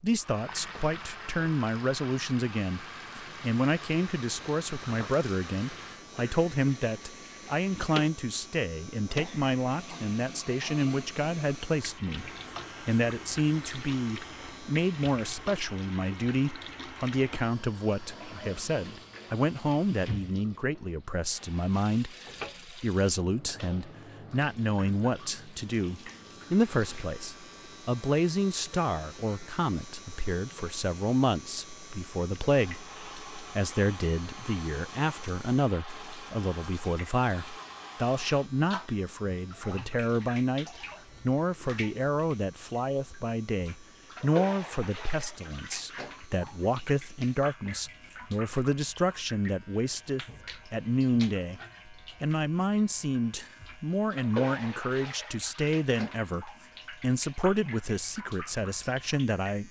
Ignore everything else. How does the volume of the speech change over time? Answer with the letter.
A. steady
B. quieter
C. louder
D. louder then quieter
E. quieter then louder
A.